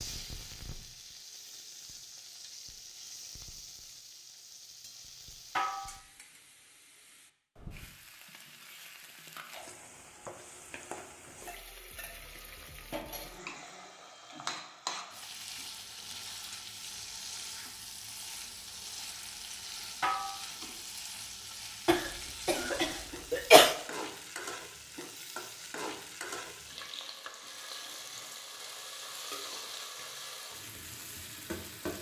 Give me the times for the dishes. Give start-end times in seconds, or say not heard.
5.5-6.0, 20.0-20.4.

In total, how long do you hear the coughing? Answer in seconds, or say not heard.
2 s.